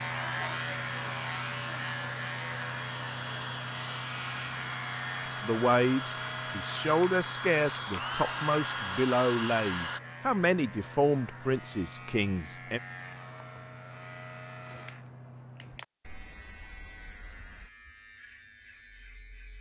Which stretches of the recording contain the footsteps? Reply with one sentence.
The footsteps can't be heard in this clip.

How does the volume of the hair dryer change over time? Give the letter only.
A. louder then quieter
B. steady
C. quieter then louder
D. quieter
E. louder
E.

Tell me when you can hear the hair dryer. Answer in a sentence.
You can hear the hair dryer from 0.1 to 10.0 s.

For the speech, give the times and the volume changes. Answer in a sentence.
You can hear the speech from 5.3 to 12.8 s, at a steady volume.